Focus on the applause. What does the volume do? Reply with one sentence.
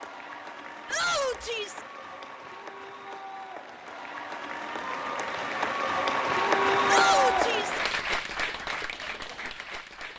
The loudness of the applause goes up, then down.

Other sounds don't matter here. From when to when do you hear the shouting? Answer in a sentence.
You can hear the shouting from 0.8 to 1.8 s and from 6.8 to 7.8 s.